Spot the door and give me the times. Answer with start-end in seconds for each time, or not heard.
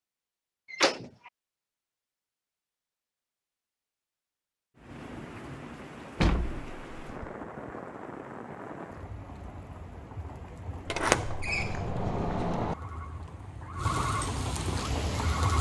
0.7-1.3, 6.2-7.3, 10.9-12.8.